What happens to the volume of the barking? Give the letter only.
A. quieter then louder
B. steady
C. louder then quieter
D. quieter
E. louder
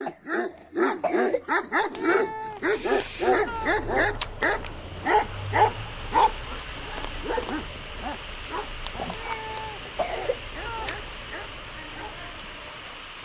D.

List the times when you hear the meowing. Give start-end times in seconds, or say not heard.
1.9-3.8, 9.1-11.0.